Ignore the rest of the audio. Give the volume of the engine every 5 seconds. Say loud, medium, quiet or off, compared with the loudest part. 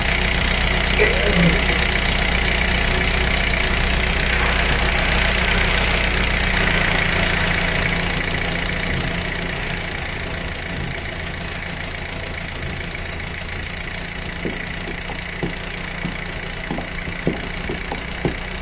loud, loud, medium, medium.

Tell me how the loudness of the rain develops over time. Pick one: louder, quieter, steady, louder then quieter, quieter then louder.
quieter then louder.